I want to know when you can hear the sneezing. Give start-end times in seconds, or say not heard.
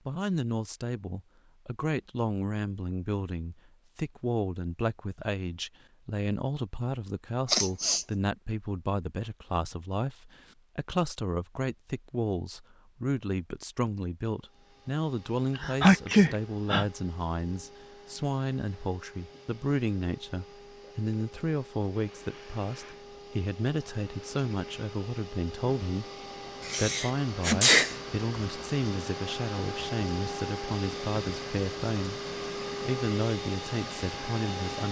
7.5-8.1, 15.6-16.9, 26.6-27.9.